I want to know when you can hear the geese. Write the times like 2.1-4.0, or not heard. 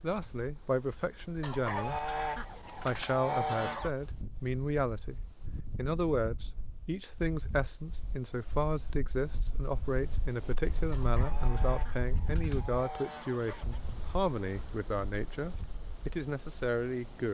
1.4-3.9, 10.9-13.8.